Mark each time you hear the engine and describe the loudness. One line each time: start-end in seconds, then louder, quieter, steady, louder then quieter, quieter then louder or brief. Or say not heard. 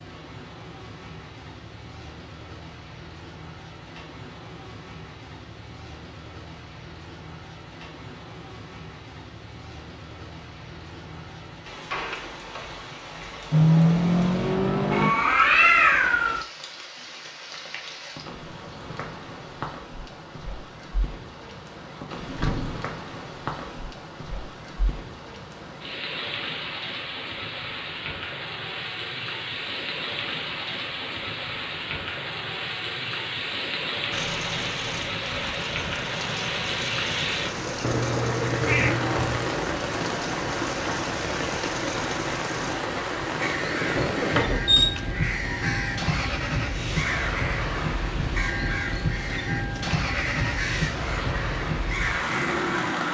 13.5-15.2 brief
34.1-53.0 steady.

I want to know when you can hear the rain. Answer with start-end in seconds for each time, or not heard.
0.0-53.0.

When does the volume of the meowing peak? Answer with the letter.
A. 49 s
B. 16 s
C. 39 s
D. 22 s
B.